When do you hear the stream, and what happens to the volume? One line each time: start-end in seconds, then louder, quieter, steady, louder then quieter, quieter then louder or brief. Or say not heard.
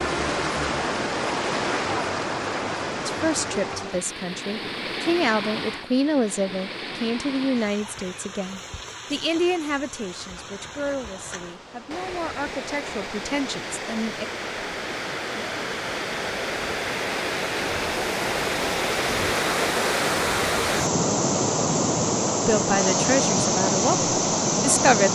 0.0-25.1 quieter then louder.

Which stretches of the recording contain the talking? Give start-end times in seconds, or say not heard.
3.0-14.2, 22.4-25.1.